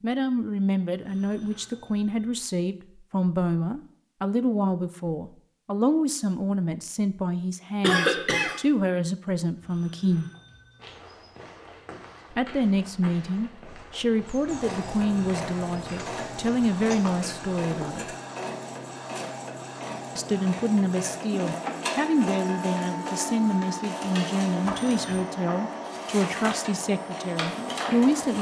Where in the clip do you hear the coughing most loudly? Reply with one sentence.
The loudest moment of the coughing is at 8 seconds.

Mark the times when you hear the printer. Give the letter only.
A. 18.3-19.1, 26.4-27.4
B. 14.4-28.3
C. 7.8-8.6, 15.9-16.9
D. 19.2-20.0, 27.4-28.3
B.